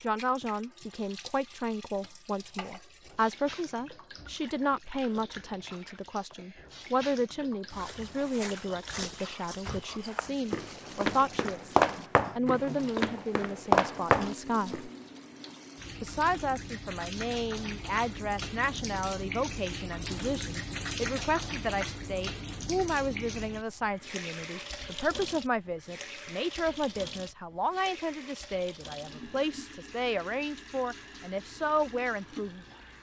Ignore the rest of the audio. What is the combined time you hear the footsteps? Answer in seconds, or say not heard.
7 s.